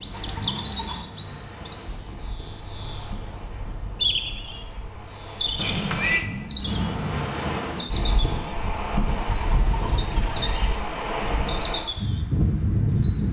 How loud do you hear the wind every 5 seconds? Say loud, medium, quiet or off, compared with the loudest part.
quiet, loud, loud.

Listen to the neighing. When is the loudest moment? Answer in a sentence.
The volume of the neighing peaks at 6 seconds.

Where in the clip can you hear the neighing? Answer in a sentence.
The neighing can be heard from 0.1 to 1.1 s, from 5.5 to 6.2 s and from 9.1 to 10.8 s.